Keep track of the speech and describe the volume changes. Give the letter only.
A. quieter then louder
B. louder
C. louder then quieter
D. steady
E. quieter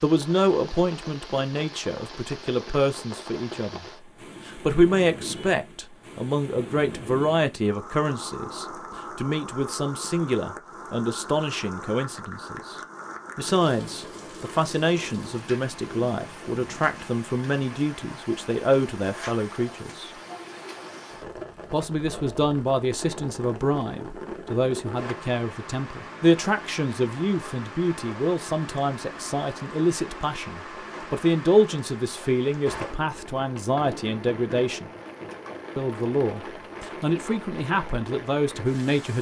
D.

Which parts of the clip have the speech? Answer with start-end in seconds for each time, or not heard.
0.0-3.9, 4.5-12.8, 13.3-20.1, 21.7-34.9, 35.8-39.1.